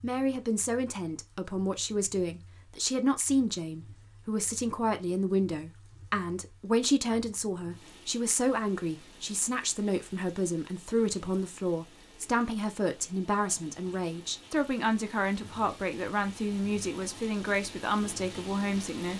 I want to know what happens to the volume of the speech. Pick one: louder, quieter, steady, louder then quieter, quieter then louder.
steady.